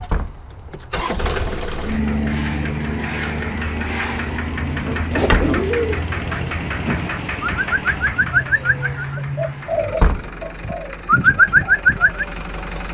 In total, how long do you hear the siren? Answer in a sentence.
You can't hear the siren here.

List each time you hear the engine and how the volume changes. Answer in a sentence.
The engine can be heard from 0.0 to 12.8 s, getting quieter.